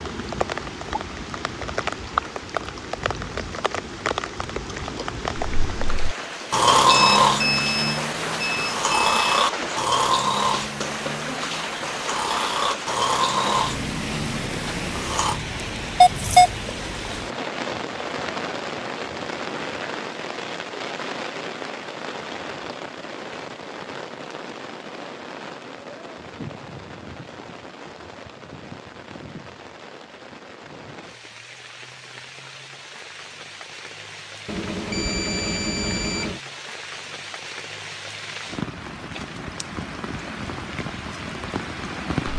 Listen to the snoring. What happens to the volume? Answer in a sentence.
The loudness of the snoring goes down.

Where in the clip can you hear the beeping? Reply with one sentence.
You can hear the beeping from 6.9 to 9.4 s, from 16.0 to 16.5 s and from 34.5 to 36.4 s.